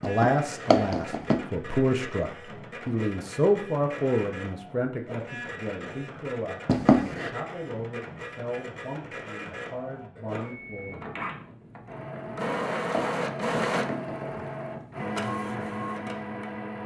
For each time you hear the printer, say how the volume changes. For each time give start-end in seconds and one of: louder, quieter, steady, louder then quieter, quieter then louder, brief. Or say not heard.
0.0-16.8 louder.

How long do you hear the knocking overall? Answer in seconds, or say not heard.
4 s.